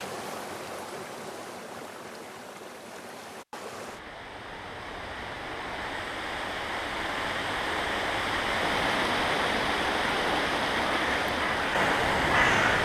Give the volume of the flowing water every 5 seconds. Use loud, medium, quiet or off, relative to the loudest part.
quiet, loud, loud.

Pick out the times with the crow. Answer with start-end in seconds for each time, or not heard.
10.9-12.7.